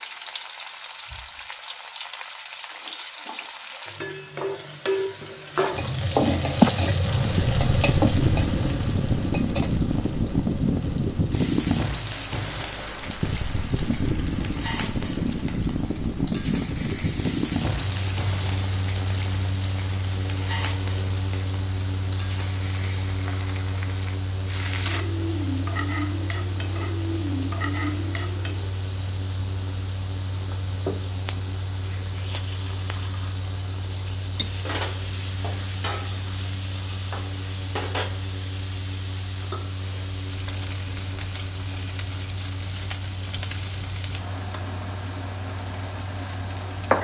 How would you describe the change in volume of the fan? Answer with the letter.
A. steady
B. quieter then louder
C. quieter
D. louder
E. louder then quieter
C.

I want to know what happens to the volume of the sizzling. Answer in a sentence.
The loudness of the sizzling goes down.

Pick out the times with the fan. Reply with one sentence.
The fan can be heard from 7.0 to 46.9 s.